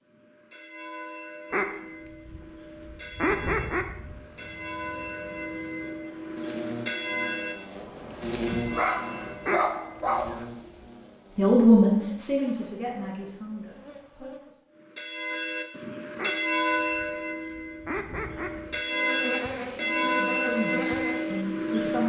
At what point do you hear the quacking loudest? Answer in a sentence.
The loudest moment of the quacking is at 3 seconds.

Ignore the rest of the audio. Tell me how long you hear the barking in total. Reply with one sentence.
The barking can be heard for 2 seconds in total.